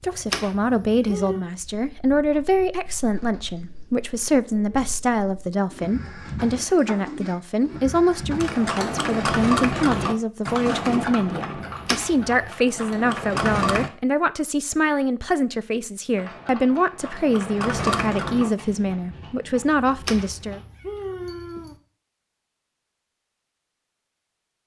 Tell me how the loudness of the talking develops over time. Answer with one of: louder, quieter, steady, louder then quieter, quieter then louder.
steady.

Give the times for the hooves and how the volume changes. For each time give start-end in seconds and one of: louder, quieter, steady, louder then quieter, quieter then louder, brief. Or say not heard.
8.4-13.9 quieter then louder
16.1-20.6 louder then quieter.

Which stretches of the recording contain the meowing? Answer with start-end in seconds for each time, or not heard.
0.0-1.4, 11.7-12.3, 19.9-21.8.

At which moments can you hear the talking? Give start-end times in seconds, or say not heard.
0.0-20.6.